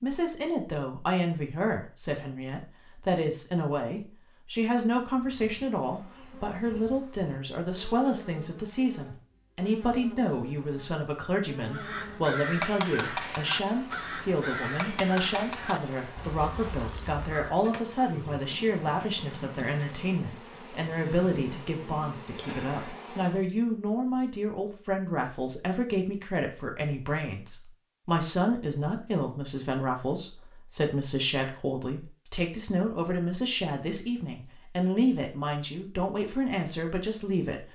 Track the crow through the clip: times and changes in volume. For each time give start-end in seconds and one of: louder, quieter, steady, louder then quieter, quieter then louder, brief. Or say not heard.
11.7-17.6 quieter.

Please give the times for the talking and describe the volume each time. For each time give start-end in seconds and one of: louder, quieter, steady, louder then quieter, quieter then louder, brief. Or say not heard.
0.0-37.6 steady.